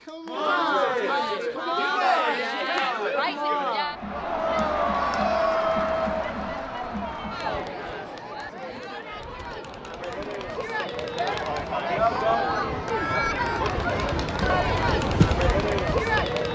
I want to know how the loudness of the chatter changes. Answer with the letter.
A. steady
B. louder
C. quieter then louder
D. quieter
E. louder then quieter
C.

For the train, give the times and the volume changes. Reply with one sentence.
You can hear the train from 11.1 to 16.4 s, getting louder.